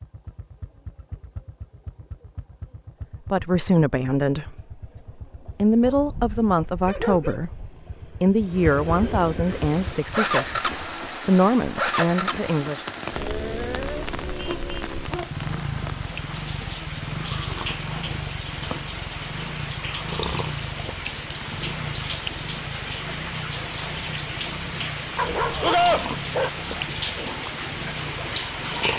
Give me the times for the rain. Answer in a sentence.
You can hear the rain from 9.4 to 28.9 s.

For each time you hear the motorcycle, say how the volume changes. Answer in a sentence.
You can hear the motorcycle from 0.0 to 28.9 s, getting louder then quieter.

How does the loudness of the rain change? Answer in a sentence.
The loudness of the rain goes up.